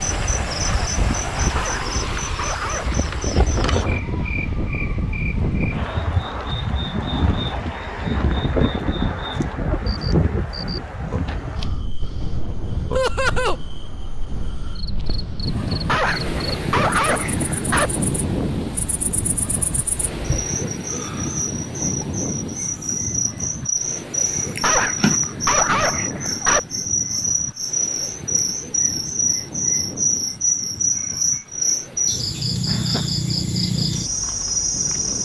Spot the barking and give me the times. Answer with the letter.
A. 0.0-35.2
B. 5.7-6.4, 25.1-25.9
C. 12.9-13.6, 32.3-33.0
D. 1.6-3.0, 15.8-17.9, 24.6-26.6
D.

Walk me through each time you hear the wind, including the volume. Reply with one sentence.
The wind can be heard from 0.0 to 35.2 s, getting quieter.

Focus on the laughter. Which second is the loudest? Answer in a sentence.
The loudest moment of the laughter is at 13 seconds.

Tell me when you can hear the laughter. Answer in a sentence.
You can hear the laughter from 12.9 to 13.6 s and from 32.3 to 33.0 s.